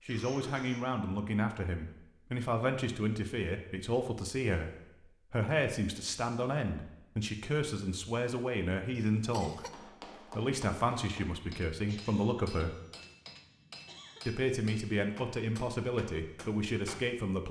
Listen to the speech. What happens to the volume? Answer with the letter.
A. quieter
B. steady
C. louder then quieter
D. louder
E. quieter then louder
B.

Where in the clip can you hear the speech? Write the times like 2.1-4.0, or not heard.
0.1-4.7, 5.3-12.8, 14.2-17.4.